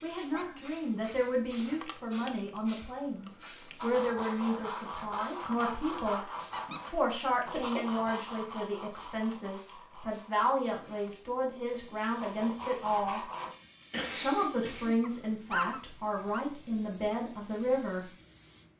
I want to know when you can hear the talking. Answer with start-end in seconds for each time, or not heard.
0.0-6.2, 6.9-13.2, 14.2-18.1.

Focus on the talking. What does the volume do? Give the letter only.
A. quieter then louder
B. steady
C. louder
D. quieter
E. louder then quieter
B.